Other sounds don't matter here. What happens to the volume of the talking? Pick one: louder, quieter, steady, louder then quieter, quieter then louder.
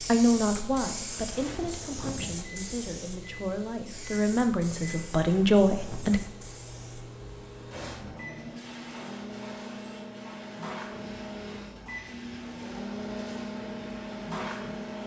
quieter then louder.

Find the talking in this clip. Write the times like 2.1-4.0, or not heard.
0.0-6.2.